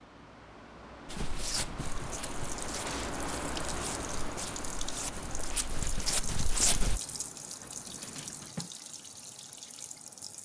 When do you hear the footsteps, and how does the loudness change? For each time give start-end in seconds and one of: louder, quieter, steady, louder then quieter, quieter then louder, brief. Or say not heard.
1.1-7.0 quieter then louder.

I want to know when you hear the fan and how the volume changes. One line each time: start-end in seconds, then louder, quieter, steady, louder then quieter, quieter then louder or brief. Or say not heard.
0.0-8.6 louder then quieter.